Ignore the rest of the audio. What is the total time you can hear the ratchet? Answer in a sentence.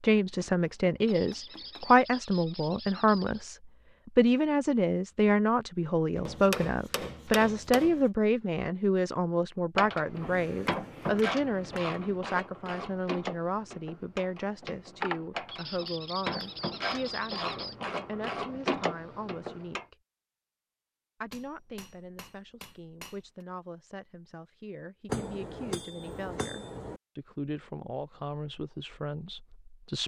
You can hear the ratchet for 10 seconds altogether.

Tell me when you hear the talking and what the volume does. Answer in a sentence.
The talking can be heard from 0.0 to 19.9 s, getting quieter; and from 21.2 to 30.0 s, getting louder.